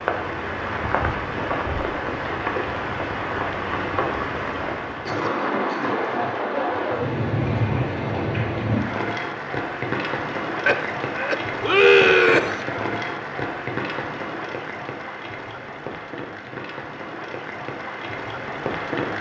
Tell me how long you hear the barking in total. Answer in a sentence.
You can't hear the barking here.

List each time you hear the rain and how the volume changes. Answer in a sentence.
You can hear the rain from 0.0 to 19.1 s, getting quieter.